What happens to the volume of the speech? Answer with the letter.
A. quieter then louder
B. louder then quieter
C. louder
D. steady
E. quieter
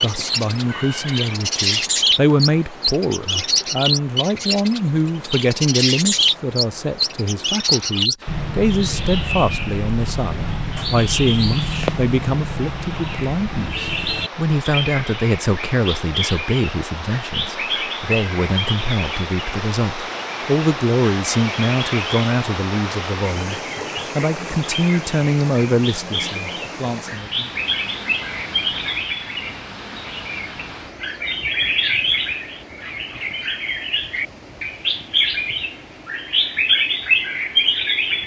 D.